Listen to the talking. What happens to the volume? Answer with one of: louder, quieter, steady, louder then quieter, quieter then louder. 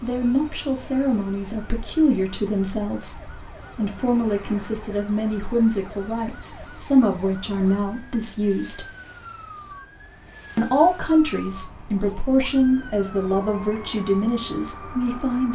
steady.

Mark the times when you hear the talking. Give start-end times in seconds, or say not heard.
0.0-8.9, 10.6-15.5.